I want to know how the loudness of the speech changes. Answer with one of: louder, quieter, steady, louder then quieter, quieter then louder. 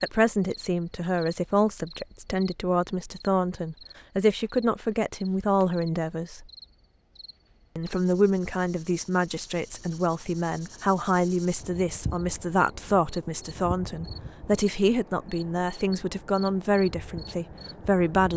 steady.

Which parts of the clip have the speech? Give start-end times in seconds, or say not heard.
0.0-6.5, 7.8-18.3.